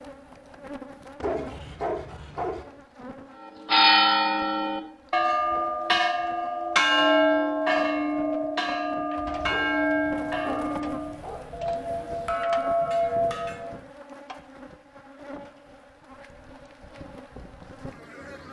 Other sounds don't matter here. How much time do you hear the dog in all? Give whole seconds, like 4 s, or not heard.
4 s.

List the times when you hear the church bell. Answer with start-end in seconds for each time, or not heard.
3.4-13.8.